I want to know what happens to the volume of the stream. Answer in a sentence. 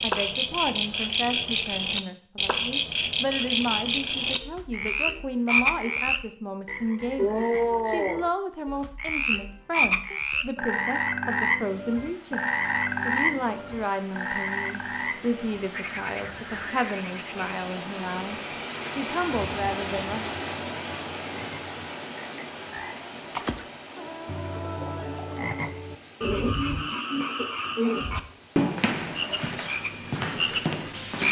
The loudness of the stream goes up, then down.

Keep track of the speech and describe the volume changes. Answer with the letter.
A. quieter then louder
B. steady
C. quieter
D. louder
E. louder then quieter
B.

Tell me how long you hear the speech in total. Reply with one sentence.
The speech can be heard for 20 seconds in total.